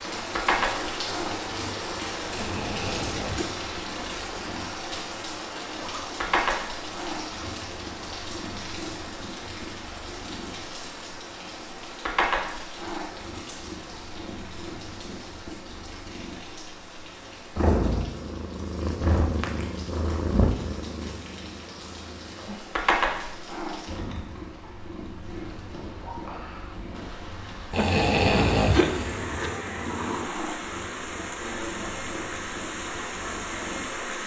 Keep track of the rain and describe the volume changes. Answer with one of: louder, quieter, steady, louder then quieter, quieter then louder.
quieter then louder.